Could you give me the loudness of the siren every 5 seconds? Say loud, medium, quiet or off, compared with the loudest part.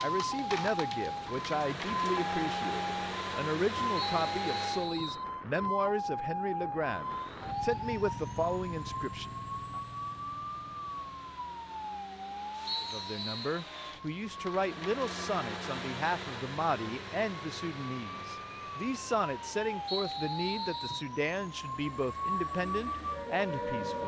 loud, loud, medium, medium, loud.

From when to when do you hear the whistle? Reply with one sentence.
You can hear the whistle from 4.0 to 5.2 s, from 12.7 to 13.7 s and from 19.9 to 21.1 s.